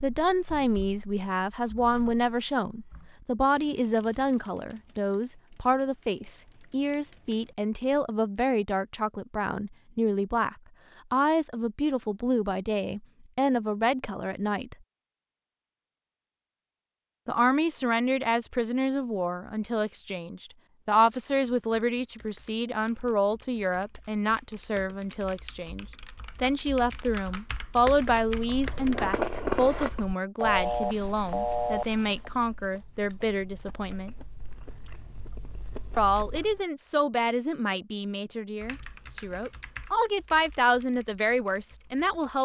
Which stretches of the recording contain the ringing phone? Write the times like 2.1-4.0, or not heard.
30.4-32.3.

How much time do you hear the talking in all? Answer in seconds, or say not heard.
38 s.